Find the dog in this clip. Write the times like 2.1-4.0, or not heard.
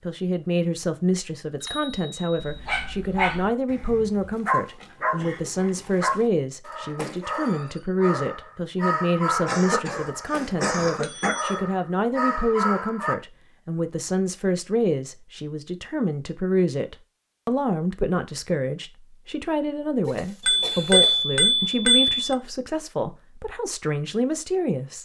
2.4-13.2.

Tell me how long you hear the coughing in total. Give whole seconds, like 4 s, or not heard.
4 s.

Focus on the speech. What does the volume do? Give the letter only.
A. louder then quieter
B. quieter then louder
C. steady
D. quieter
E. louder
C.